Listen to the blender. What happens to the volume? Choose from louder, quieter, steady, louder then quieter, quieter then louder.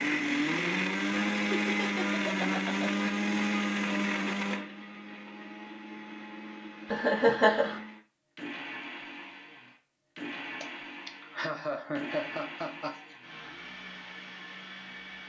quieter.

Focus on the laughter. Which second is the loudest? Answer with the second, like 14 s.
7 s.